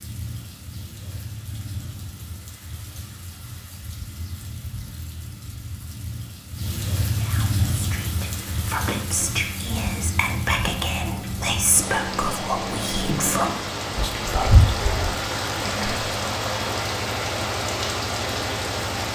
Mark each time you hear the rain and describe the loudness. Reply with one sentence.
The rain can be heard from 0.0 to 19.0 s, getting louder.